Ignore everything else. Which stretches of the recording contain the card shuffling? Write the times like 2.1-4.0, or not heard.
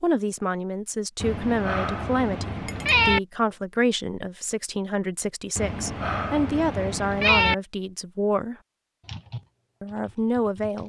not heard.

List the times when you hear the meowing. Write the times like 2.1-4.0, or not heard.
1.2-3.2, 5.5-7.5.